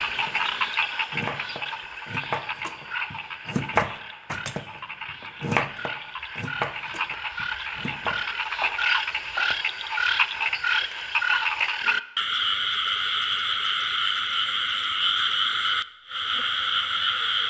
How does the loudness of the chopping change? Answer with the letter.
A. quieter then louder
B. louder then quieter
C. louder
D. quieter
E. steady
B.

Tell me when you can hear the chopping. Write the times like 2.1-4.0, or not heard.
0.0-9.7.